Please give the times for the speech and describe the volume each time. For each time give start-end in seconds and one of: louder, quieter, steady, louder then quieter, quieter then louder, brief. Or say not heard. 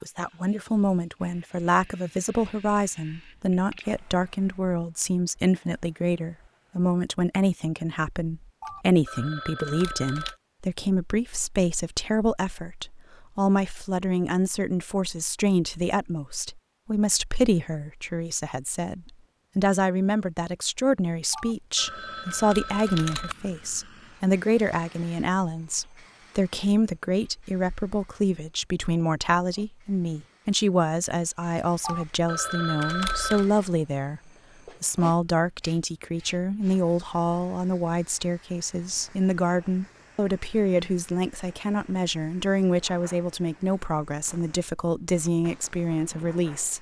0.0-34.2 steady
34.8-46.7 steady.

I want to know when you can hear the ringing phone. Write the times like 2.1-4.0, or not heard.
8.6-10.3, 21.3-23.4, 31.8-33.5.